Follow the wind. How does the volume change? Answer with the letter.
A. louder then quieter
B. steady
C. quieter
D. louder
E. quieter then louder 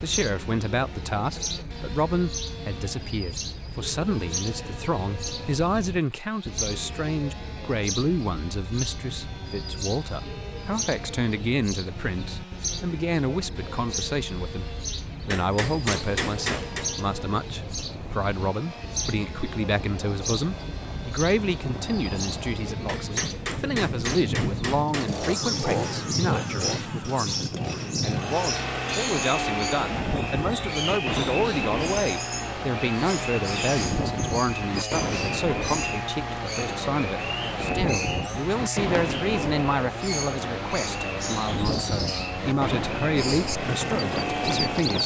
D.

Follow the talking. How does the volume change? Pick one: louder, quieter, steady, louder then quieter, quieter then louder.
steady.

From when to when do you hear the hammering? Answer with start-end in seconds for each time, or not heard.
15.3-16.9, 22.9-25.3.